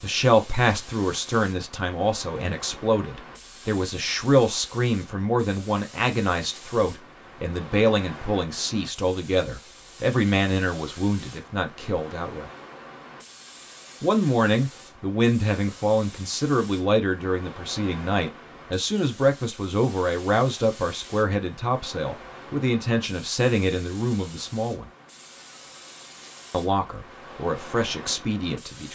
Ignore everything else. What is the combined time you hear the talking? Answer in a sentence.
The talking can be heard for 26 seconds in total.